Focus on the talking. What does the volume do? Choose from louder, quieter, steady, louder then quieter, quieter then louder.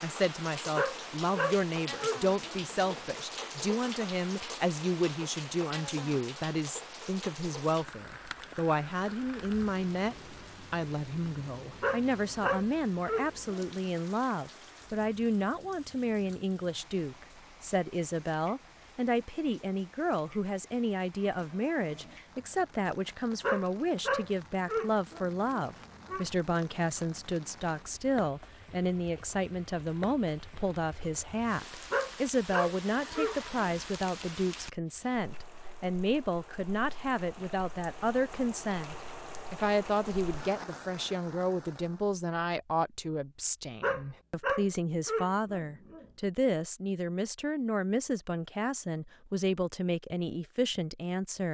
steady.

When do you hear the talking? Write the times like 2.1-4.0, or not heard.
0.0-51.4.